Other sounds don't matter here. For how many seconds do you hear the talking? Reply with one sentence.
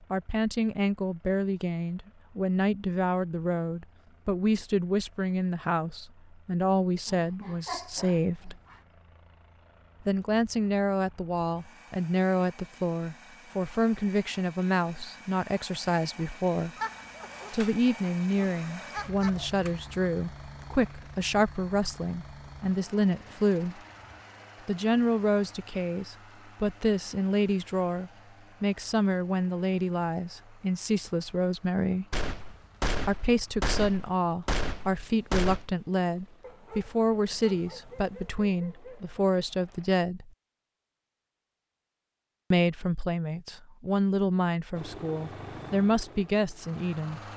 You can hear the talking for 41 seconds altogether.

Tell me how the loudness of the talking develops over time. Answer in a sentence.
The loudness of the talking stays about the same.